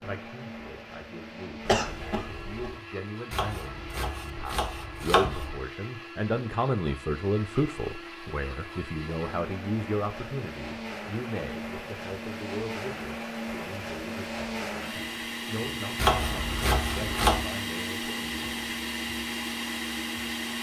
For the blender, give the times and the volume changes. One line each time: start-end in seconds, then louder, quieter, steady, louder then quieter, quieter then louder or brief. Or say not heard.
0.0-20.5 louder.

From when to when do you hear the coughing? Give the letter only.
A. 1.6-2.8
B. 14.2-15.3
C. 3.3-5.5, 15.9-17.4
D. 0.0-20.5
A.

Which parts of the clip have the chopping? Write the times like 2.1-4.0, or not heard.
3.3-5.5, 15.9-17.4.